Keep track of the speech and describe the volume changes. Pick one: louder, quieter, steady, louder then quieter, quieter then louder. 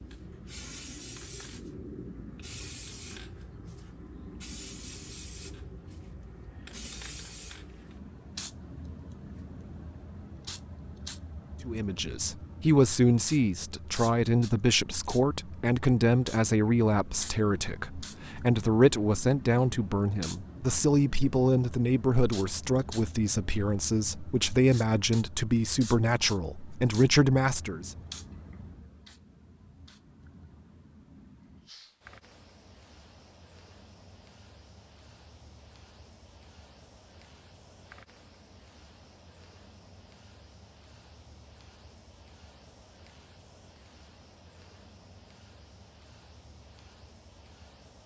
steady.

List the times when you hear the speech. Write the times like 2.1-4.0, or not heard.
11.7-27.9.